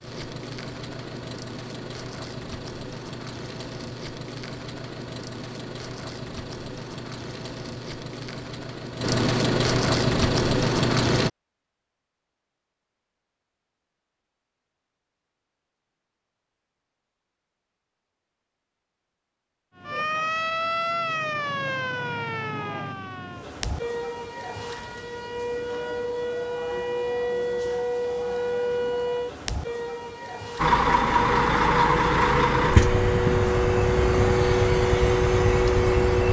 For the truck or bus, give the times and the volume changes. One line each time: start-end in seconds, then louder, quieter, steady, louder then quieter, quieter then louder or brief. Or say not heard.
0.0-11.3 louder
30.6-36.2 steady.